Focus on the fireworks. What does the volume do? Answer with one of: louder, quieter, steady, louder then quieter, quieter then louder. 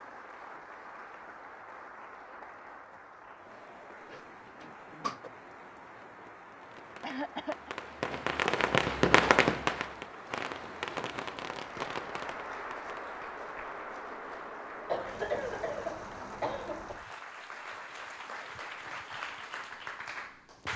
louder then quieter.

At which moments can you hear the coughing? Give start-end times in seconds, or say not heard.
4.1-5.3, 7.0-7.7, 14.8-16.9.